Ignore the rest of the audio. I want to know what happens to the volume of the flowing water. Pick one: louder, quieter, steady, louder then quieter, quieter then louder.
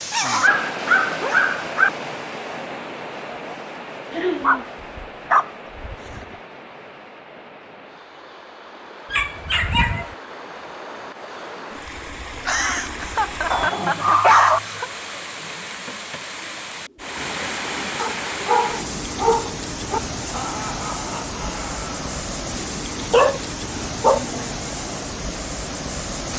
quieter then louder.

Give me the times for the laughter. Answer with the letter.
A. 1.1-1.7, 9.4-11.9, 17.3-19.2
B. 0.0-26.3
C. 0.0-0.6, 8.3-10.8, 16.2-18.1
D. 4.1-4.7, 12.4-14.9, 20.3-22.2
D.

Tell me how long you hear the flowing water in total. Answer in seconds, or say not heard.
26 s.